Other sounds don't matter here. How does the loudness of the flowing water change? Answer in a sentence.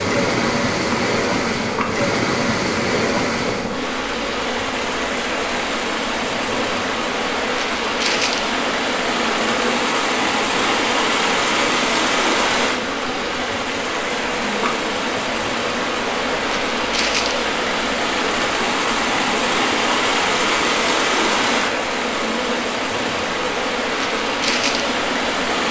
The volume of the flowing water stays about the same.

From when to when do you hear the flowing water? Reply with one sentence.
You can hear the flowing water from 0.0 to 25.6 s.